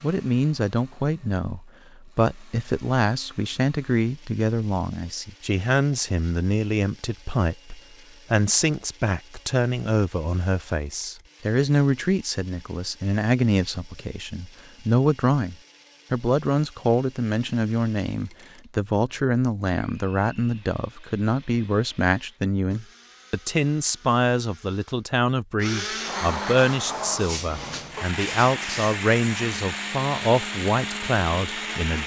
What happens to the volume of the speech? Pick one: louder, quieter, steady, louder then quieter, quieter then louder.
steady.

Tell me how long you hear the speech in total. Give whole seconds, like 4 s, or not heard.
32 s.